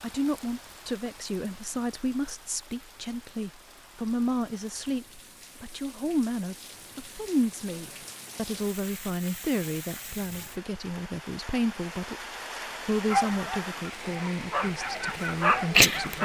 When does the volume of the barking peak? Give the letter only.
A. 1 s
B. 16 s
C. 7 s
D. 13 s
B.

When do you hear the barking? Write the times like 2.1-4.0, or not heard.
13.1-16.1.